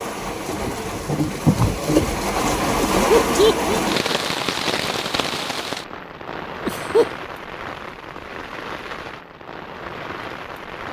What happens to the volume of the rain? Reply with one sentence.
The volume of the rain goes down.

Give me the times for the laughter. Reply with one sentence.
You can hear the laughter from 2.9 to 3.8 s and from 6.7 to 7.2 s.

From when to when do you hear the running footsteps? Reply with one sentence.
The running footsteps can't be heard in this clip.